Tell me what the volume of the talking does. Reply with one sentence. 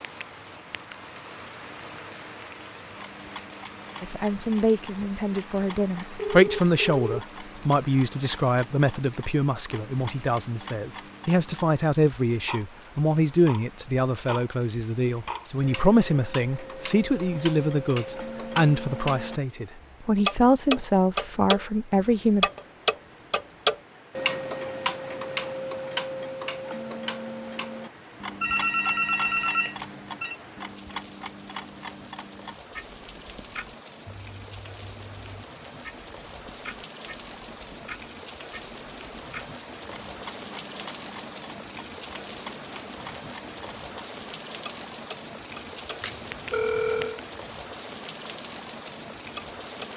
The loudness of the talking stays about the same.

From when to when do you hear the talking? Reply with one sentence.
The talking can be heard from 4.0 to 22.5 s.